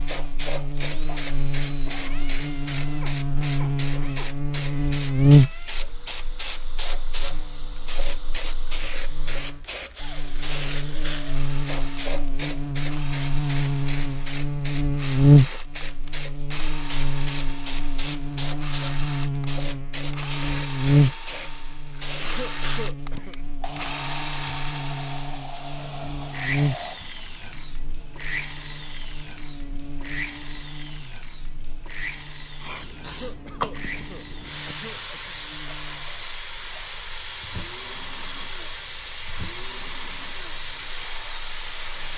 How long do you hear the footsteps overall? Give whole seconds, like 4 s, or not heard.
not heard.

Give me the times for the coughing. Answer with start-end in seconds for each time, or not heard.
1.1-2.2, 22.2-23.4, 33.0-35.1.